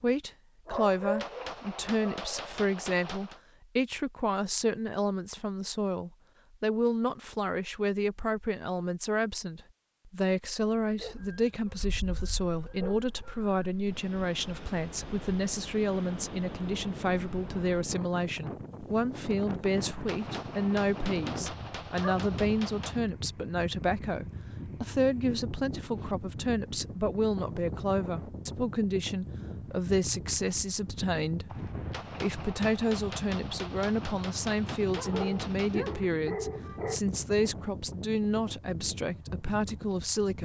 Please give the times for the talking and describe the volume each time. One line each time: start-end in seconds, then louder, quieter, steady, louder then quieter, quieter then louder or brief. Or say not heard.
0.0-40.3 steady.